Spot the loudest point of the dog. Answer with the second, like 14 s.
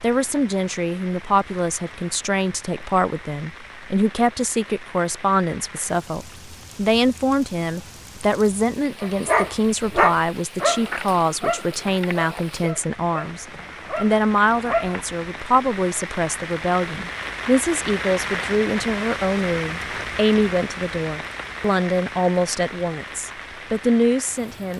10 s.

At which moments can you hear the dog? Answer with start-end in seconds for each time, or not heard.
9.0-15.1.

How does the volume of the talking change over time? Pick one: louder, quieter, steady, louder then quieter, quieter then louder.
steady.